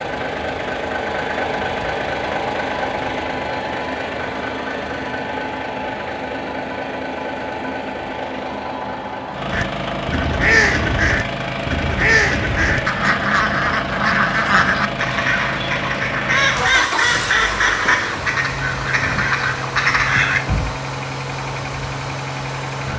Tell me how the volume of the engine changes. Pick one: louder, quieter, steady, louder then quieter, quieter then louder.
steady.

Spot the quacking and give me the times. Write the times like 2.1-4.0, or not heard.
9.5-20.4.